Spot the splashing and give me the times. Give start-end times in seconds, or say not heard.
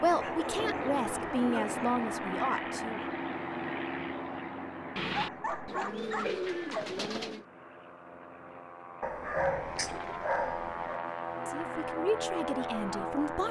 not heard.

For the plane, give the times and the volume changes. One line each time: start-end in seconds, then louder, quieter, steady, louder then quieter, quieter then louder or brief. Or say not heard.
0.0-13.4 quieter then louder.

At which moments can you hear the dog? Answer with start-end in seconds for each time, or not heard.
0.1-1.8, 5.1-6.9, 9.0-10.9.